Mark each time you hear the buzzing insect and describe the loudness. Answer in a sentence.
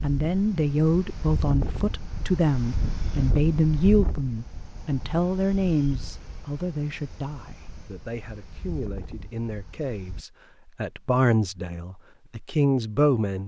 You can't hear the buzzing insect here.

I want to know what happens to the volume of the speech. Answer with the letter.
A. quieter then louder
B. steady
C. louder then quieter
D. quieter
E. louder
A.